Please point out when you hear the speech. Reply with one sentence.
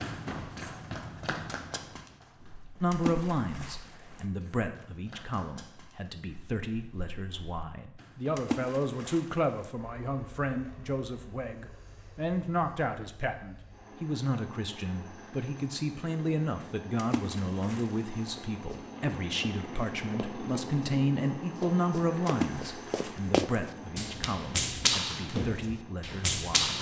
You can hear the speech from 2.8 to 26.7 s.